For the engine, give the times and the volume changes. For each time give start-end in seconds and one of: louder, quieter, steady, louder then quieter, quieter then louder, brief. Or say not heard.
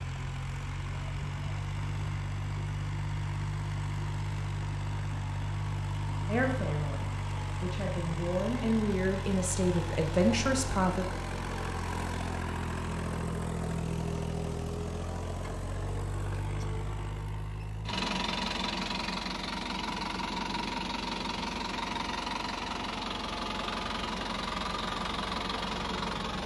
0.0-26.4 steady.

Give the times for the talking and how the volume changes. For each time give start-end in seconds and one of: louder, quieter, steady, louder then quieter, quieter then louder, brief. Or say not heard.
6.2-11.1 louder.